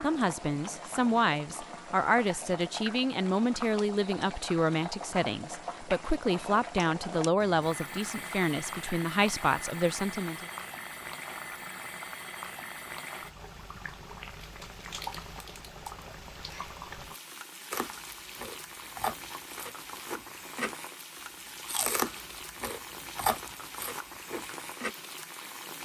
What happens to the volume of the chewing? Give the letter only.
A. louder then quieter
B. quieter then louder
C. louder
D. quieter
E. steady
A.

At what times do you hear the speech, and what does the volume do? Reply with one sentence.
You can hear the speech from 0.0 to 10.4 s, at a steady volume.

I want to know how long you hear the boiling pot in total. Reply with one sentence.
The boiling pot can be heard for 26 seconds in total.